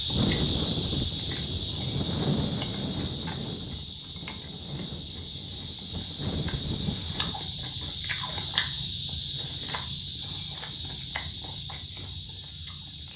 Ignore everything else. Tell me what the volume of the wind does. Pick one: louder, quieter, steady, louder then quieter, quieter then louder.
quieter then louder.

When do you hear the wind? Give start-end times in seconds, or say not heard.
0.0-7.3.